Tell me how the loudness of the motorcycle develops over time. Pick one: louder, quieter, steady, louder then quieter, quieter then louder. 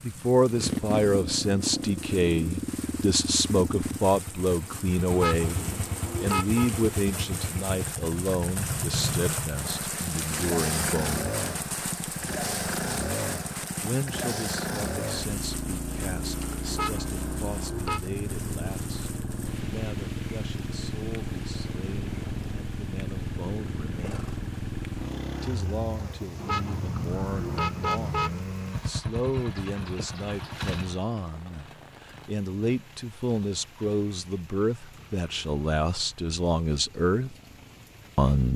quieter.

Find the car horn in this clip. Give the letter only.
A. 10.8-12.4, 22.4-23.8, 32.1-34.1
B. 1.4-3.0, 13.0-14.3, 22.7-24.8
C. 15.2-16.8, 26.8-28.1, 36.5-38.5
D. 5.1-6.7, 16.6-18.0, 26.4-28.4
D.